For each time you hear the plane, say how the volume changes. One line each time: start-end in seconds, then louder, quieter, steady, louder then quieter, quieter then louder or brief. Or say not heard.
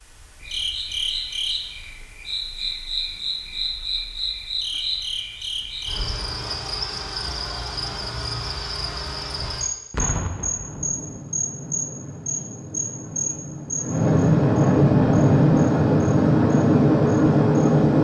10.6-17.9 louder.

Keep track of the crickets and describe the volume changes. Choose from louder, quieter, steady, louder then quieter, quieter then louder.
quieter.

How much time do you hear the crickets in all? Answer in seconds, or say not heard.
18 s.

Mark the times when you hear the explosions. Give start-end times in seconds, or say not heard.
9.9-11.2.